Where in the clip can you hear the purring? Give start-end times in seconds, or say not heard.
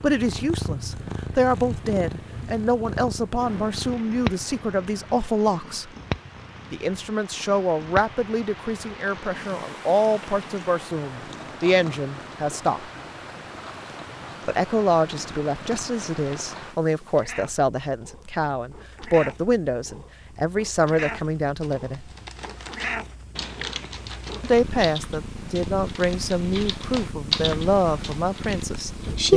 0.0-29.3.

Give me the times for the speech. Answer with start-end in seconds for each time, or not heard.
0.0-5.9, 6.7-12.8, 14.4-22.1, 24.4-29.3.